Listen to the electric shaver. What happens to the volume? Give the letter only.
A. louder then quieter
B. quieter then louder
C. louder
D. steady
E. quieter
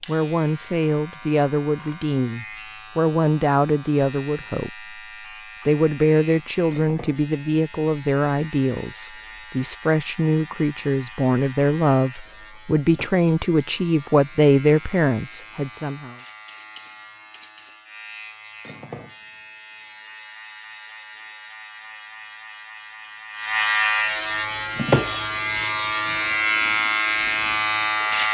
C.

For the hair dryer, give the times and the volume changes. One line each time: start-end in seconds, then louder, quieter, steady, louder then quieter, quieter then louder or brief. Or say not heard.
not heard.